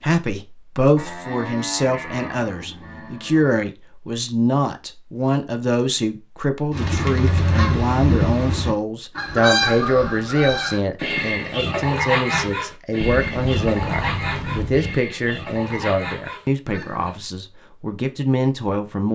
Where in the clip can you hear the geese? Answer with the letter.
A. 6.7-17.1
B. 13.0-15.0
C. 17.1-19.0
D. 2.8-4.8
A.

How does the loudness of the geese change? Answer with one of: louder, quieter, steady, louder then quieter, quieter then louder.
quieter.